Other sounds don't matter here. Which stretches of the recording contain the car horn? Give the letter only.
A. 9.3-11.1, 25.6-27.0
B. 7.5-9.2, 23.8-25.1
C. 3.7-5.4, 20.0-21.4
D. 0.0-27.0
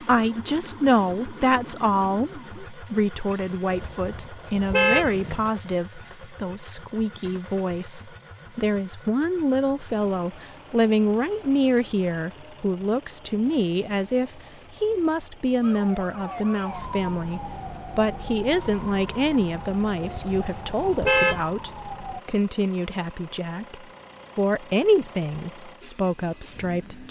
C.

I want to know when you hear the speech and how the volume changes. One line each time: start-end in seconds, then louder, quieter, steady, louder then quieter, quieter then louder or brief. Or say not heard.
0.0-27.0 steady.